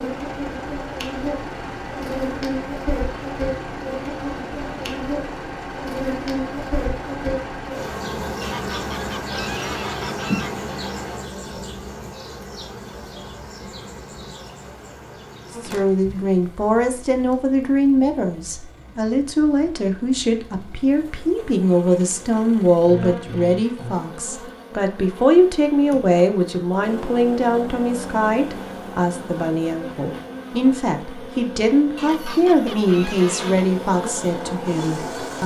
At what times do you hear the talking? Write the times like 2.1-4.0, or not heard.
15.6-35.4.